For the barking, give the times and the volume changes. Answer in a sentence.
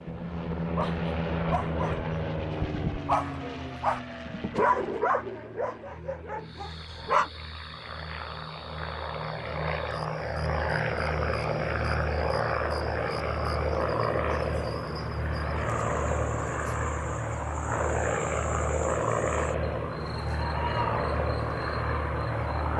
The barking can be heard from 0.1 to 7.2 s, getting louder then quieter.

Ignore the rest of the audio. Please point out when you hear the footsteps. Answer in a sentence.
The footsteps can't be heard in this clip.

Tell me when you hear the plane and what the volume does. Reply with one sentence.
The plane can be heard from 0.0 to 22.7 s, getting quieter then louder.